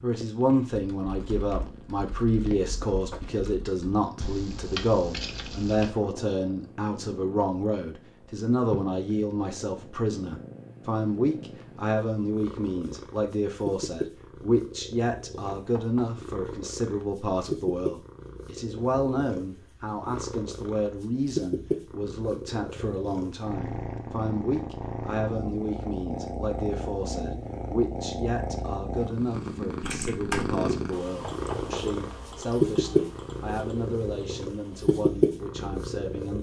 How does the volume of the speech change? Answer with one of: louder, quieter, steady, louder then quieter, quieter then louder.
quieter.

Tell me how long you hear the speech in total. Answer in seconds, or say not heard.
36 s.